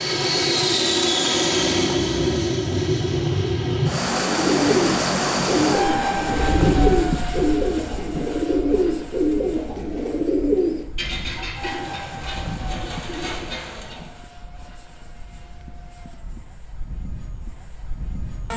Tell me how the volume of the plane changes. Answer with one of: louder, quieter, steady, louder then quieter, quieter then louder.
quieter.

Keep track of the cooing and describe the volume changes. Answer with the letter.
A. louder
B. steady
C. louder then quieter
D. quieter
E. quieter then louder
D.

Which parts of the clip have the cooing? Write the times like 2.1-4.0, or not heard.
4.2-14.2.